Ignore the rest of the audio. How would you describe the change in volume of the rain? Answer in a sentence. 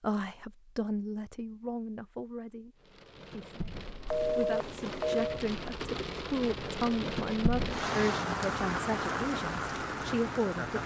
The loudness of the rain goes up.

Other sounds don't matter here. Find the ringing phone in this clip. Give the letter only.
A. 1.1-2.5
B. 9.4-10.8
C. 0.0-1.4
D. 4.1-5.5
D.